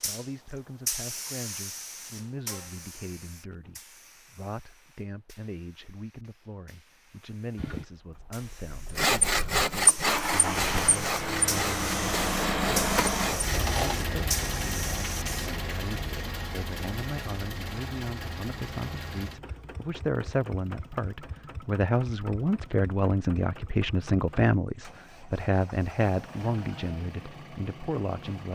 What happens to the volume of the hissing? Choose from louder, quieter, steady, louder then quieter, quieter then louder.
quieter then louder.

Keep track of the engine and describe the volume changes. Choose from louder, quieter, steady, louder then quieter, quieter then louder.
quieter.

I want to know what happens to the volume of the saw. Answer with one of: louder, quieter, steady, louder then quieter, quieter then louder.
quieter.